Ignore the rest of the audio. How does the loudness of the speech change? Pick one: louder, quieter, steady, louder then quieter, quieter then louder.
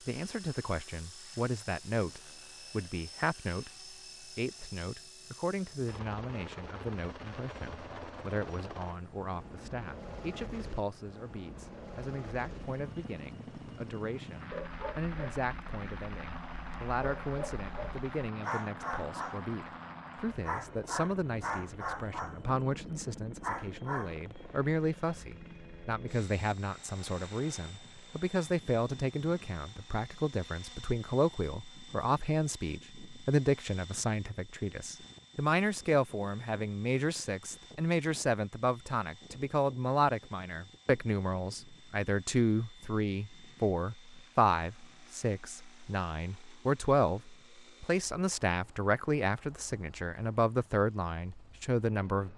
louder.